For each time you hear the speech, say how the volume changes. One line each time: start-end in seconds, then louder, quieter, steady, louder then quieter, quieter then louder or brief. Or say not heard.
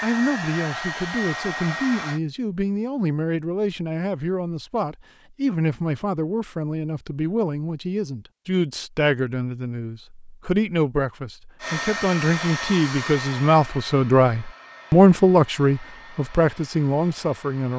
0.0-17.7 louder.